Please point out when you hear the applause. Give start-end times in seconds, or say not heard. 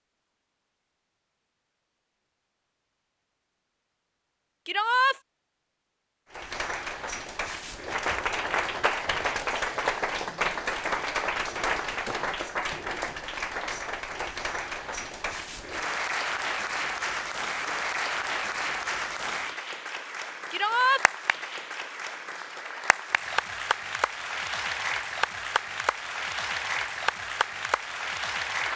6.3-28.7.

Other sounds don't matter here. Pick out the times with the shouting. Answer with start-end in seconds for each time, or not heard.
4.7-5.2, 20.5-21.1.